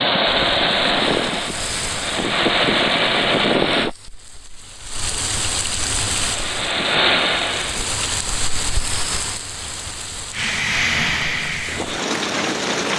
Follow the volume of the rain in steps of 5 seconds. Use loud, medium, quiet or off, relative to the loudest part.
medium, loud, loud.